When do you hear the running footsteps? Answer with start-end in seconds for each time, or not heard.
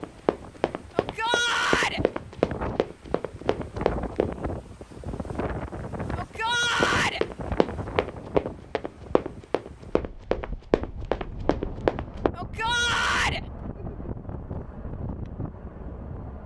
0.0-4.3, 6.8-12.3.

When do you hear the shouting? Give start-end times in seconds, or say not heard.
0.9-2.0, 6.2-7.2, 12.3-13.4.